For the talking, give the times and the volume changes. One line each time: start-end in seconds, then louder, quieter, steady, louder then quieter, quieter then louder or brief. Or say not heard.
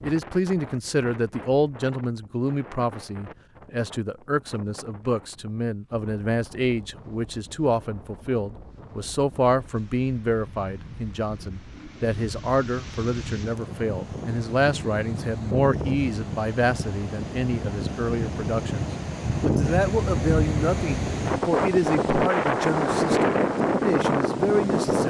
0.0-25.0 steady.